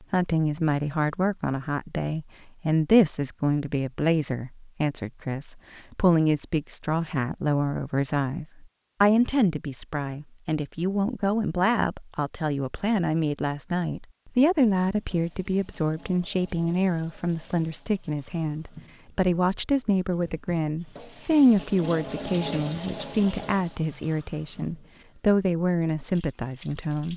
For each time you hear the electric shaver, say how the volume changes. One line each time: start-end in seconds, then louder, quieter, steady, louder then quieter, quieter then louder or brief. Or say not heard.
not heard.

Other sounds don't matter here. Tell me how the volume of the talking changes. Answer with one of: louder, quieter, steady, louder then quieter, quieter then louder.
steady.